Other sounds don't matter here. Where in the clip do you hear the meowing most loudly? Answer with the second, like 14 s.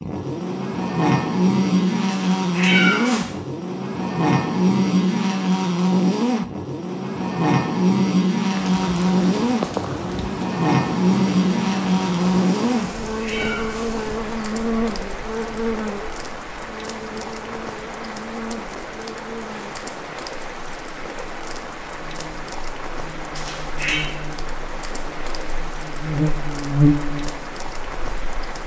3 s.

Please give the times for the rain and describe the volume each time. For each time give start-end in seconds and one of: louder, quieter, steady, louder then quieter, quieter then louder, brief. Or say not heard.
8.5-28.6 steady.